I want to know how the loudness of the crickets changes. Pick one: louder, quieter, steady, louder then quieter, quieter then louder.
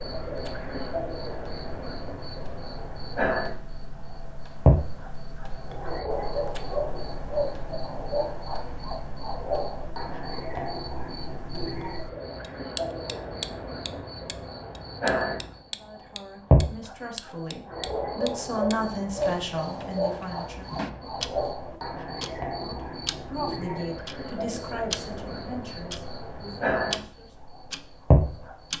steady.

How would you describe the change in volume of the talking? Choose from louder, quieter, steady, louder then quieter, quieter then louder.
louder then quieter.